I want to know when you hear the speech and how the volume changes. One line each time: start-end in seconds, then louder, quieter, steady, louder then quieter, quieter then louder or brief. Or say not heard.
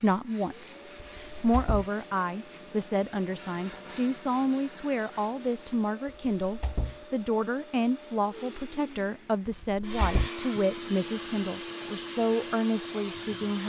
0.0-13.6 steady.